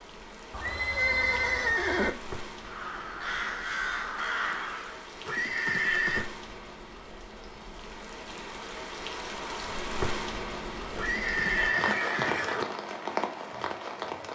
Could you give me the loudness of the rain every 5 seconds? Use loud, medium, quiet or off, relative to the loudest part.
medium, medium, loud.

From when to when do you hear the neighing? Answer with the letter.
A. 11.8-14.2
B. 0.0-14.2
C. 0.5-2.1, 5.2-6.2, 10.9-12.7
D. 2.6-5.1
C.